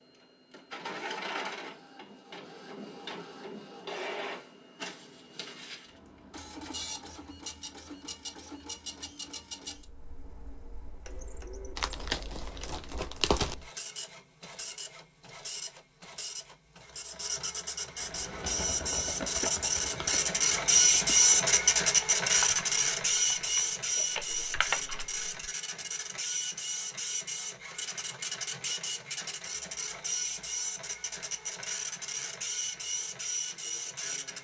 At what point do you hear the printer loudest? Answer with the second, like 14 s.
21 s.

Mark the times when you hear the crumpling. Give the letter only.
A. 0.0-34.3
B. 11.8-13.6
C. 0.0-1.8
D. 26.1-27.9
B.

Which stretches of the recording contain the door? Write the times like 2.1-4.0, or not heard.
not heard.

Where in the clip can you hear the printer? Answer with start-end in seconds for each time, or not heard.
0.0-34.3.